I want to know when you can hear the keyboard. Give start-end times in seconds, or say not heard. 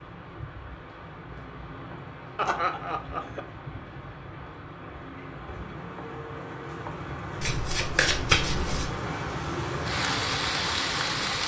not heard.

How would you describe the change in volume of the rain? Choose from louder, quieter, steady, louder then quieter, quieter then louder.
louder.